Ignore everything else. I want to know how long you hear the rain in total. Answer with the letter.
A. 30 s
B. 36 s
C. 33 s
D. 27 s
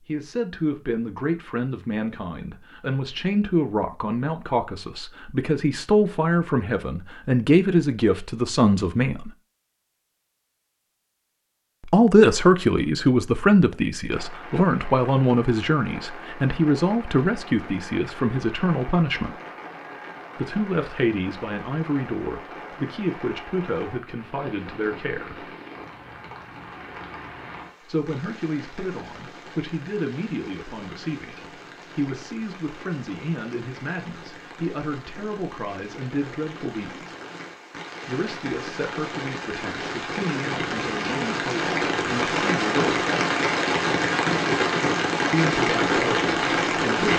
C.